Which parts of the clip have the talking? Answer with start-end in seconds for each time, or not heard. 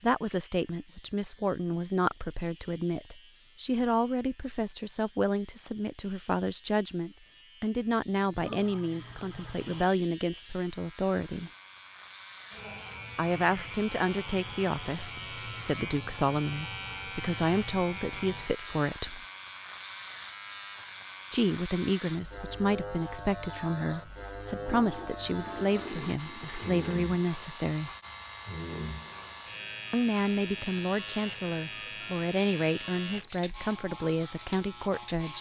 0.0-11.5, 13.2-19.2, 21.3-27.9, 29.9-35.3.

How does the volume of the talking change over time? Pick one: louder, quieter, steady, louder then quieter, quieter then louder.
steady.